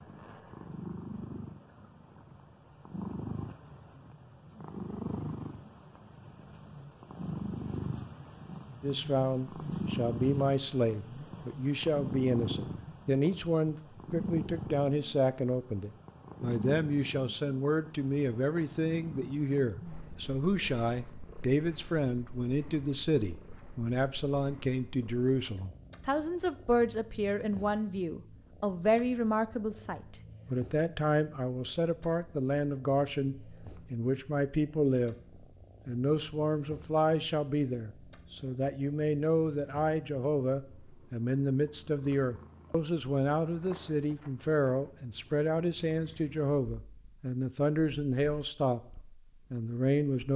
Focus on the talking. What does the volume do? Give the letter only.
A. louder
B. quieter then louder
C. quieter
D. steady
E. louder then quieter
D.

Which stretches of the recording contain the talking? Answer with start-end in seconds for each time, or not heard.
8.8-35.1, 35.9-50.3.